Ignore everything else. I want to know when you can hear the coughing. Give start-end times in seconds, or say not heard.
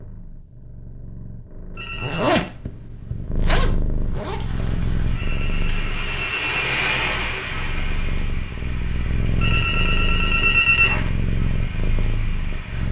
not heard.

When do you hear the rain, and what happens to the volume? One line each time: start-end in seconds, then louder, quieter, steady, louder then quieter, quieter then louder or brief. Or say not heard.
4.0-12.8 louder then quieter.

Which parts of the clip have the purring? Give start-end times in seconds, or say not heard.
0.0-12.8.